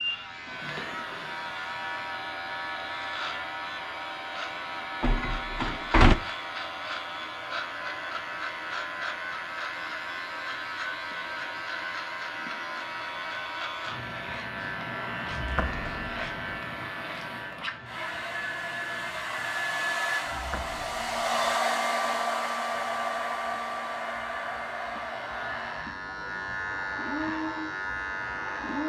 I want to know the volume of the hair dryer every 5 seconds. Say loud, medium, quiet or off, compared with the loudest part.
quiet, quiet, quiet, medium, loud, medium.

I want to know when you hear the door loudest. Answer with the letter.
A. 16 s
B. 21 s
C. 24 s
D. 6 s
D.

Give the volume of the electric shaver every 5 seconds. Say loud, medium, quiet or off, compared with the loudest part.
loud, loud, loud, loud, medium, loud.